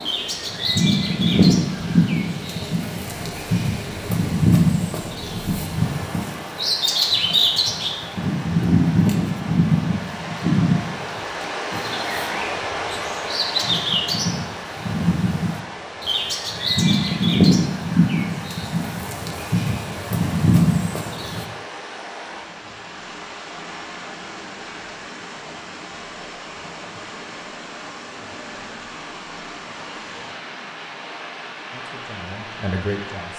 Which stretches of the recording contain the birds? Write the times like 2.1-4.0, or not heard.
0.0-21.4.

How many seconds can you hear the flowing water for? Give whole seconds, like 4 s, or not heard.
33 s.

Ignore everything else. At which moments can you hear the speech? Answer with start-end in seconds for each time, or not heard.
31.7-33.3.